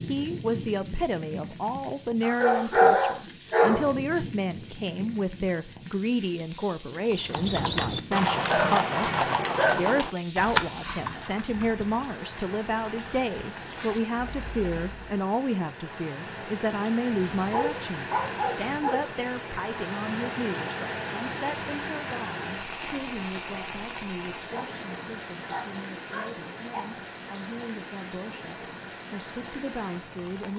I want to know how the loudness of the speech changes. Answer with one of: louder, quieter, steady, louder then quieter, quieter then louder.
quieter.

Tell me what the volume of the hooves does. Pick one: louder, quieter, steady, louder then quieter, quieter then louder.
quieter.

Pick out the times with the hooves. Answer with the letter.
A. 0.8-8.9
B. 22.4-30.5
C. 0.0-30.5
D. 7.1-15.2
D.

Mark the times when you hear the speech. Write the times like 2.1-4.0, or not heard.
0.0-30.5.